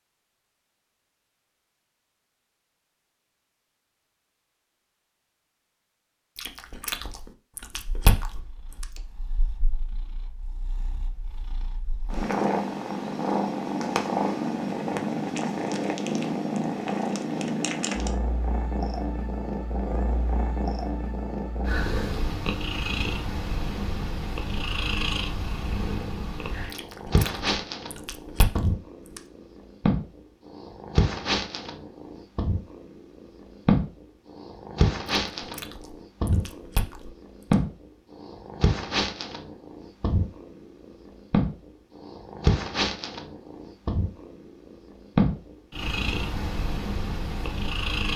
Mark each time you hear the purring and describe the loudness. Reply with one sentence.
You can hear the purring from 7.8 to 48.1 s, at a steady volume.